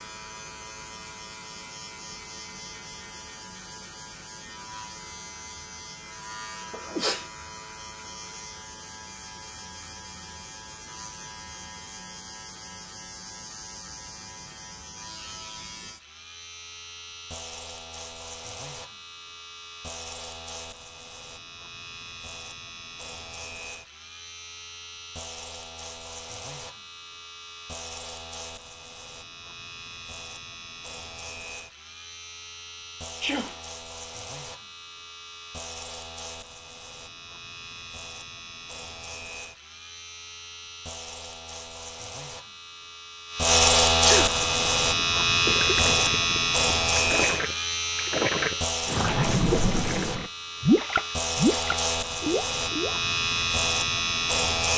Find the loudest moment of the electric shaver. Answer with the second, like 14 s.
44 s.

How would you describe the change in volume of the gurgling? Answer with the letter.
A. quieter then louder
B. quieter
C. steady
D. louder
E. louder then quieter
D.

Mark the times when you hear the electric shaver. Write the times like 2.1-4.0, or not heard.
0.0-54.7.